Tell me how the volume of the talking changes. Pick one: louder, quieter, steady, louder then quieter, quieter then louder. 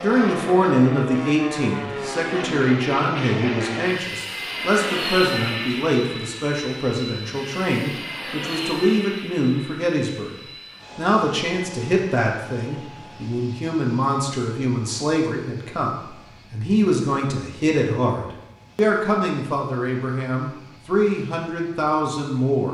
steady.